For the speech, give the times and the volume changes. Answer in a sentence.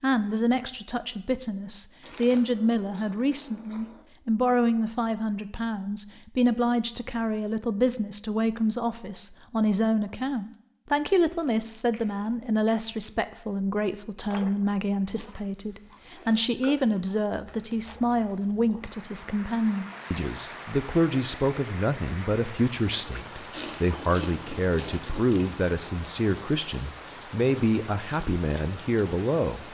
The speech can be heard from 0.0 to 29.6 s, at a steady volume.